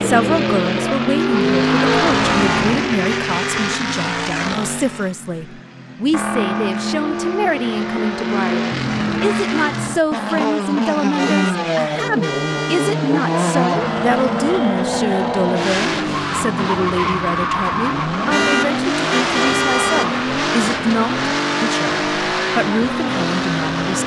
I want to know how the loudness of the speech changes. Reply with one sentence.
The loudness of the speech stays about the same.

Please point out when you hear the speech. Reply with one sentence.
The speech can be heard from 0.0 to 24.0 s.